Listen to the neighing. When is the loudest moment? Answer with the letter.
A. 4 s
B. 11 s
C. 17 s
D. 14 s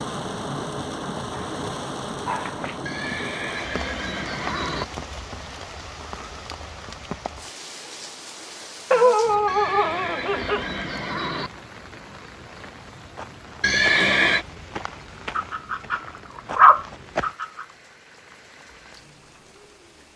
D.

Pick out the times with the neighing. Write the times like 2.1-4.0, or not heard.
2.9-4.8, 9.4-11.5, 13.6-14.4.